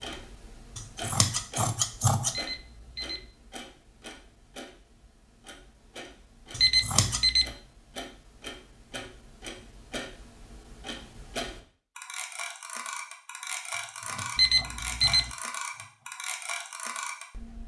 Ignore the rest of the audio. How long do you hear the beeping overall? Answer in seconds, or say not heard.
3 s.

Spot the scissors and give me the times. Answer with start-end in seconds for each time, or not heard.
0.8-2.4, 6.5-7.2, 13.7-16.1.